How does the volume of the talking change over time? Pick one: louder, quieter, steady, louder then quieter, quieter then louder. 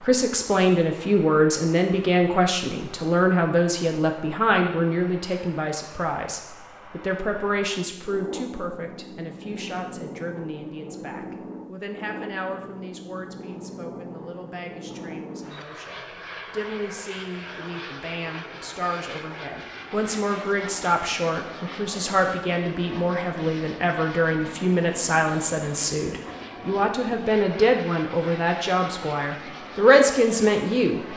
quieter then louder.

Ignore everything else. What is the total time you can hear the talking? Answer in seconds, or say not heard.
31 s.